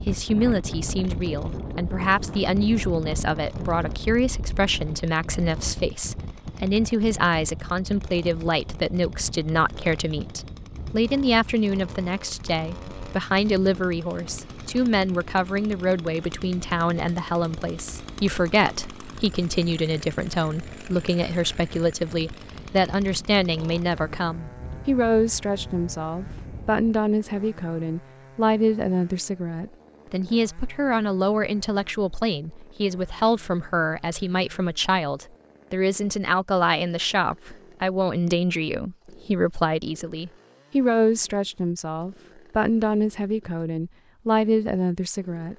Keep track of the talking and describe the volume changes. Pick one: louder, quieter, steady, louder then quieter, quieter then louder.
steady.